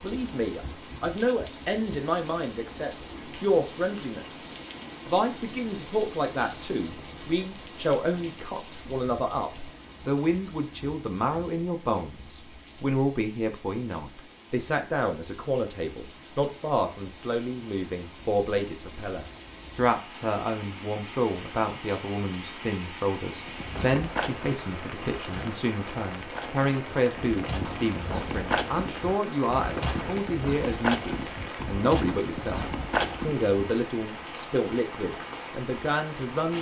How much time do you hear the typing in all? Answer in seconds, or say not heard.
not heard.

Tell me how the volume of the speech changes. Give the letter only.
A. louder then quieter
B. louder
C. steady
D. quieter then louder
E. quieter
C.